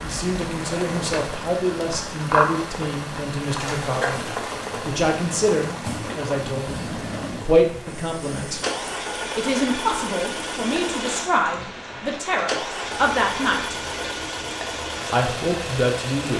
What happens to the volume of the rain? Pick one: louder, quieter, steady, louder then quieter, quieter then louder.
quieter.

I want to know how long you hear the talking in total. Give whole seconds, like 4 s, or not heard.
14 s.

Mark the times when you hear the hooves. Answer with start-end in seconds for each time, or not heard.
not heard.